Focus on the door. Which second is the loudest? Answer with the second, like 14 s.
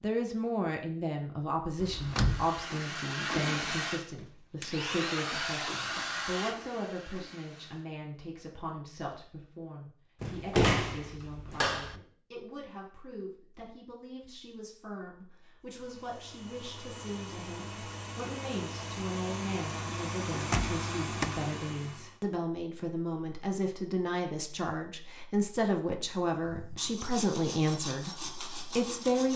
11 s.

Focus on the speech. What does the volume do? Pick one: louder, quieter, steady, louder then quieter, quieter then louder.
quieter then louder.